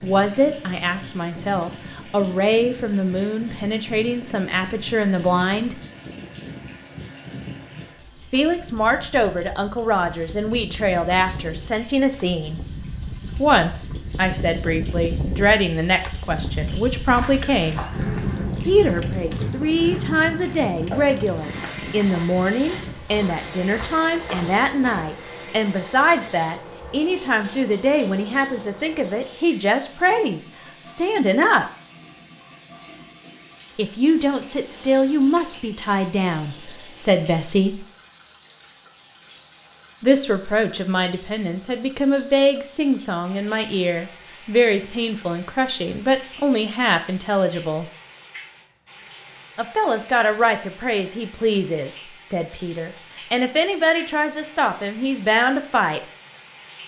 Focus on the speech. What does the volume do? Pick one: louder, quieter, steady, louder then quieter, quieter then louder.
steady.